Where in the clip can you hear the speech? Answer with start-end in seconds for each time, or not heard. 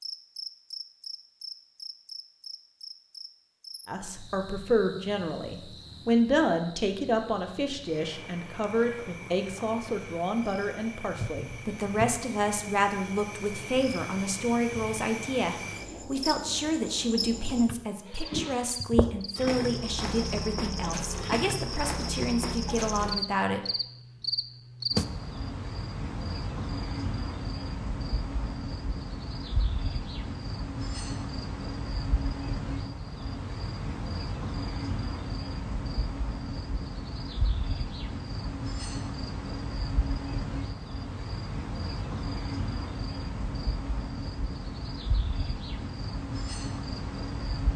3.9-23.6.